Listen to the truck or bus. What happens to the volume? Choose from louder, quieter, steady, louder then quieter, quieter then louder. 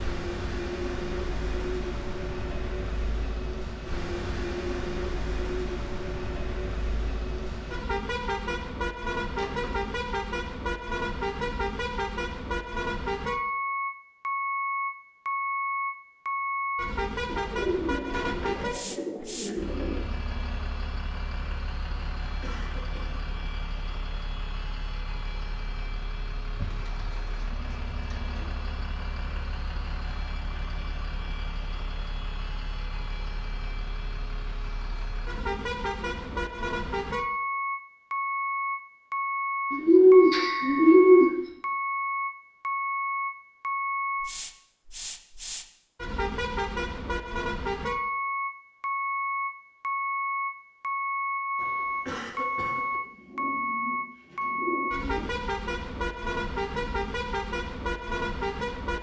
quieter then louder.